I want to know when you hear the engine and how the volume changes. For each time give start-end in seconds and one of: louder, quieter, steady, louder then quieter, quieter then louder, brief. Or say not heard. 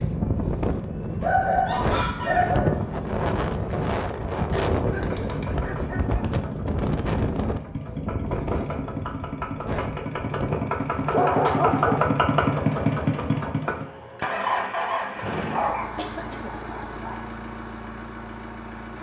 0.0-18.9 louder then quieter.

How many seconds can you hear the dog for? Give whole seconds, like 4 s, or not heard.
6 s.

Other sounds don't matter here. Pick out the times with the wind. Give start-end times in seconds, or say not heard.
0.0-11.2.